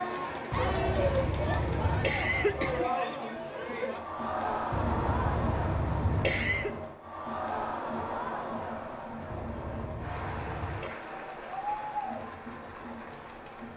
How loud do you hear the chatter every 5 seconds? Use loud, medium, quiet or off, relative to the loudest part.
loud, loud, medium.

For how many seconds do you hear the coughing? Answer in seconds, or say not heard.
6 s.